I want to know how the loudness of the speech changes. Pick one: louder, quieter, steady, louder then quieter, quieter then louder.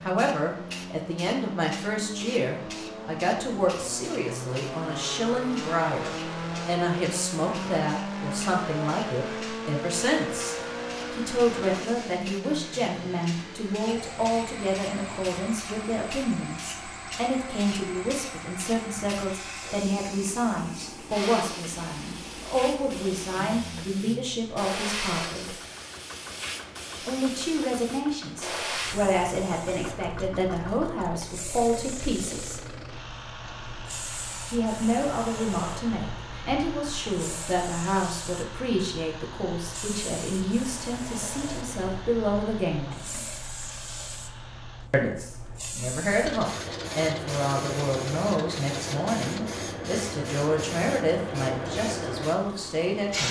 steady.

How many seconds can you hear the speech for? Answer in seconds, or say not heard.
48 s.